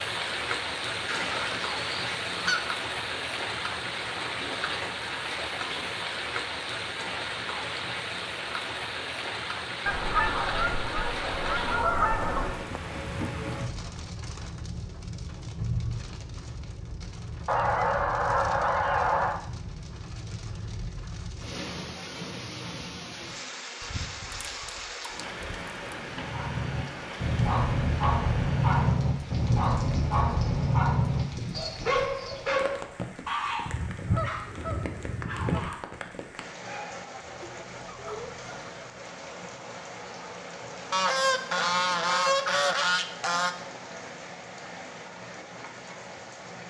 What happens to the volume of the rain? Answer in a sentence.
The loudness of the rain goes down.